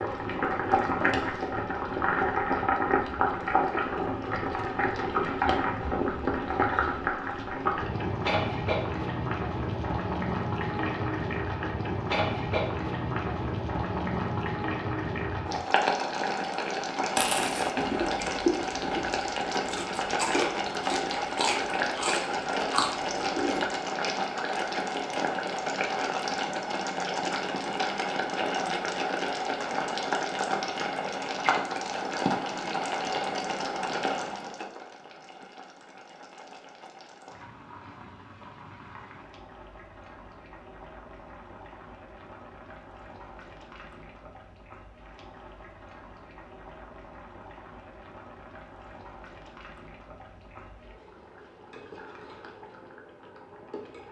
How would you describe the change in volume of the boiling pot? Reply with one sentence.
The loudness of the boiling pot goes down.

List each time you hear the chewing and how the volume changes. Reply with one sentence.
The chewing can be heard from 17.1 to 23.7 s, getting quieter then louder.